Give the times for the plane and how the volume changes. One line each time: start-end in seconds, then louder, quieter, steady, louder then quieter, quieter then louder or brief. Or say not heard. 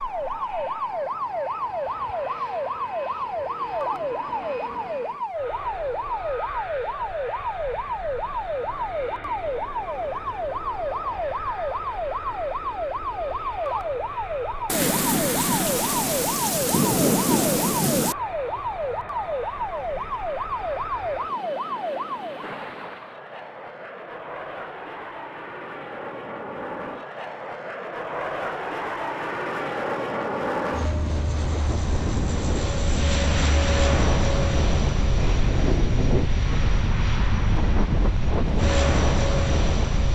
0.0-40.1 louder.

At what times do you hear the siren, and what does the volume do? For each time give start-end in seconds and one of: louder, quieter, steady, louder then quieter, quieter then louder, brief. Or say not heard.
0.0-22.6 steady.